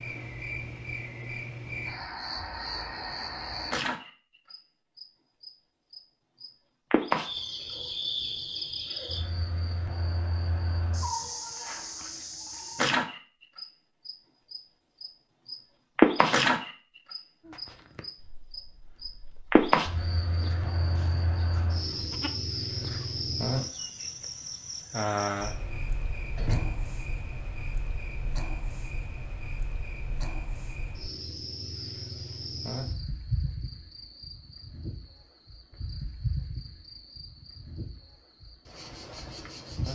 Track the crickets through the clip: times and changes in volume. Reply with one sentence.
You can hear the crickets from 0.0 to 39.8 s, getting louder then quieter.